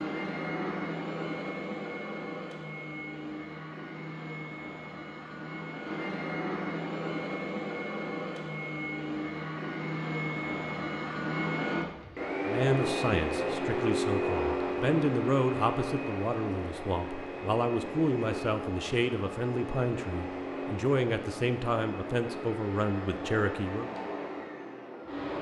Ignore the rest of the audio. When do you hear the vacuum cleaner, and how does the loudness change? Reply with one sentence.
The vacuum cleaner can be heard from 0.0 to 25.3 s, getting louder then quieter.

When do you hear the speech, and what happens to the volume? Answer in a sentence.
The speech can be heard from 12.4 to 23.9 s, at a steady volume.